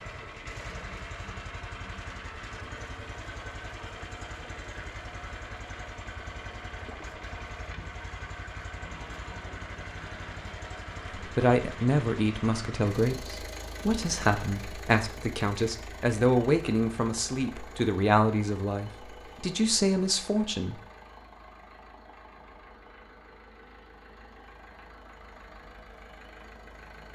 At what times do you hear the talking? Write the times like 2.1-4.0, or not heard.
11.2-20.8.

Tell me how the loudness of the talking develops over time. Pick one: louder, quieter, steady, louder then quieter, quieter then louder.
steady.